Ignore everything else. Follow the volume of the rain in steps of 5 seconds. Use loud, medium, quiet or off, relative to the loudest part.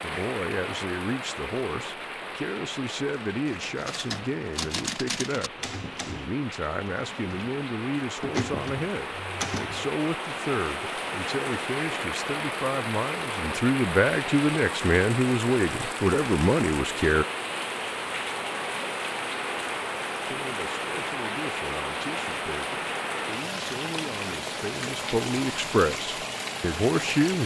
medium, medium, loud, loud, loud, loud.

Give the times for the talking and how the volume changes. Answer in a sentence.
The talking can be heard from 0.0 to 17.2 s, getting louder; and from 20.3 to 27.4 s, getting louder.